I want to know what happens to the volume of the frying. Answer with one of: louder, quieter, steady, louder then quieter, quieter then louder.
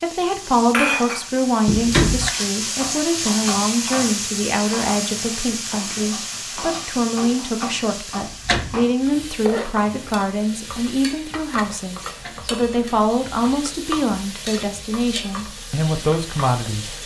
quieter.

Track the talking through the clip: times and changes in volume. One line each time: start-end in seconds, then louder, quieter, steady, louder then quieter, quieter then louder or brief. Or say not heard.
0.0-16.9 steady.